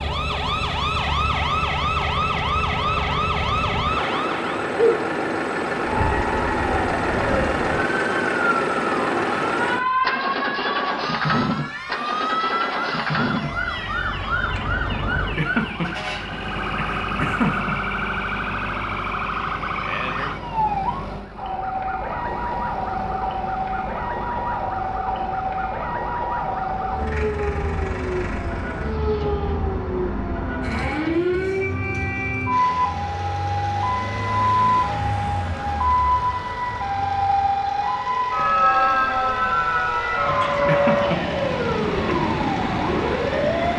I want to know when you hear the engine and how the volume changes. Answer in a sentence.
The engine can be heard from 0.0 to 43.7 s, getting quieter.